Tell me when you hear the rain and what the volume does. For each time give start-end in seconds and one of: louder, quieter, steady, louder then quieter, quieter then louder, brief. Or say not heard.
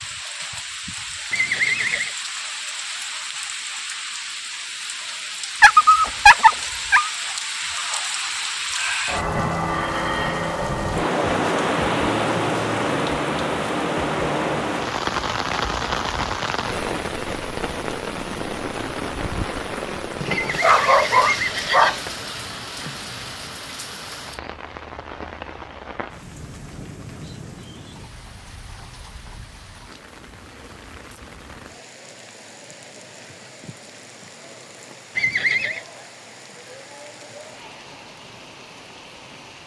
0.0-39.6 louder then quieter.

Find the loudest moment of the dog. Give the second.
6 s.